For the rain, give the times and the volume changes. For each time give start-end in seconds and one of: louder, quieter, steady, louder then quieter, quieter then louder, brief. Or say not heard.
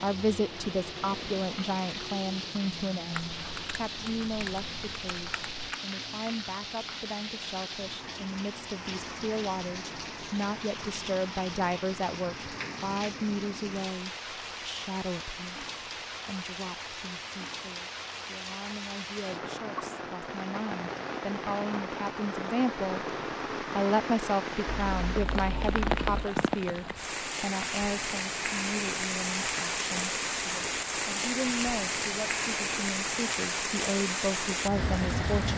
0.0-35.5 louder.